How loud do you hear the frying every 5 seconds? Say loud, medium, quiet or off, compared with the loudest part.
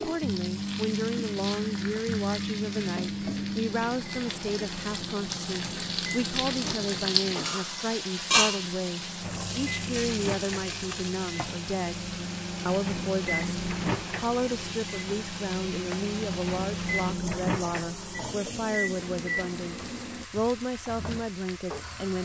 medium, loud, medium, medium, medium.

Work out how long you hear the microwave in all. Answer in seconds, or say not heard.
20 s.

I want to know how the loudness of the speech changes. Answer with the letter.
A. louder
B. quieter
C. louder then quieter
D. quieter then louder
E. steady
E.